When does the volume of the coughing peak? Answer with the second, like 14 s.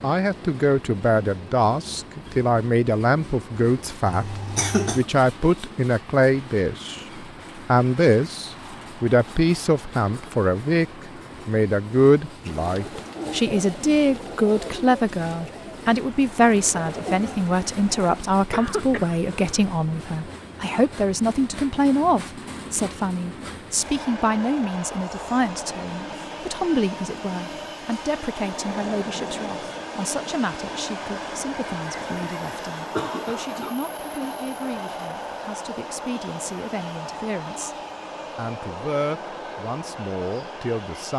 5 s.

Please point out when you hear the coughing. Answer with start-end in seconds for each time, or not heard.
4.0-5.0, 18.5-19.6, 32.5-33.8.